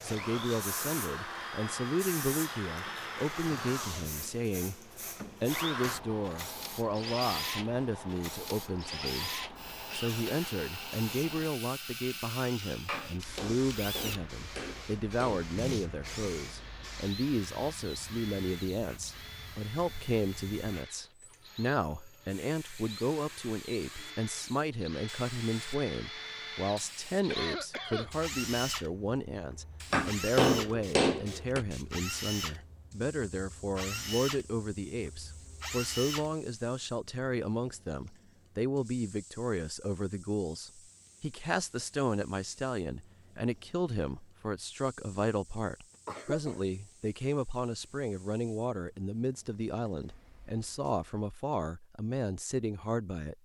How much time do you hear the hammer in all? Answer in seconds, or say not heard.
4 s.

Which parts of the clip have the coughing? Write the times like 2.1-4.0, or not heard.
9.5-10.5, 27.3-28.1, 46.0-46.6.